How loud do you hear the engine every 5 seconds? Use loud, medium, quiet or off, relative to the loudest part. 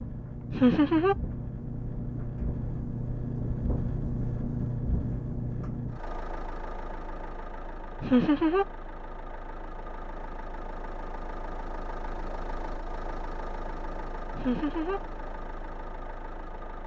loud, medium, medium, medium.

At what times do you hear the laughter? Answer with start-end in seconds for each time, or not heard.
0.5-1.1, 8.0-8.7, 14.3-15.0.